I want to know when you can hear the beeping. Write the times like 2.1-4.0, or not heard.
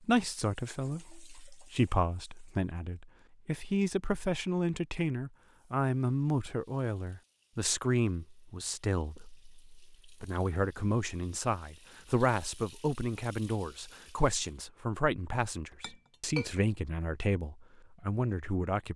not heard.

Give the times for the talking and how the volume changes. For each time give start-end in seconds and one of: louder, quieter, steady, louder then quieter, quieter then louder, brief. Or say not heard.
0.0-18.9 steady.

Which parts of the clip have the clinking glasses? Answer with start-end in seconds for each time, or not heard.
15.6-16.6.